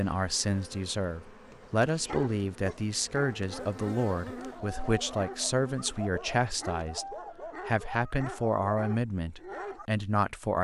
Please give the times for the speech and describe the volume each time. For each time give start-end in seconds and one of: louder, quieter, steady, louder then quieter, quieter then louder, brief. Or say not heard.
0.0-10.5 steady.